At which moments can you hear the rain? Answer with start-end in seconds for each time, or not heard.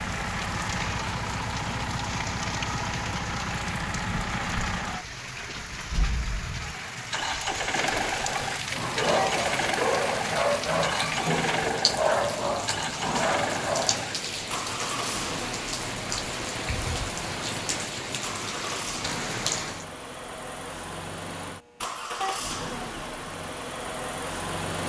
0.0-19.9.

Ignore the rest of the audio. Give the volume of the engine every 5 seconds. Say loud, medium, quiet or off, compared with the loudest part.
loud, loud, loud, medium, loud.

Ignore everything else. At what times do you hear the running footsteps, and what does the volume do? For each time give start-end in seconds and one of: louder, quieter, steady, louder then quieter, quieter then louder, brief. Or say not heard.
not heard.